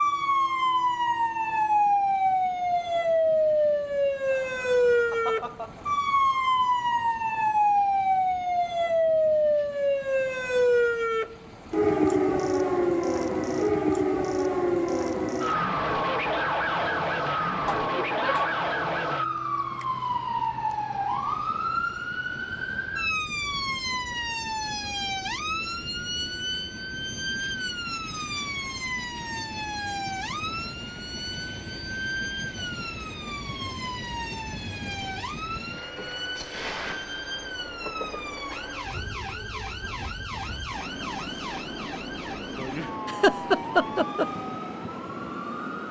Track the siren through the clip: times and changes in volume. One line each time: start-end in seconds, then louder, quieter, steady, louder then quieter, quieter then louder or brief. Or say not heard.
0.0-45.8 quieter.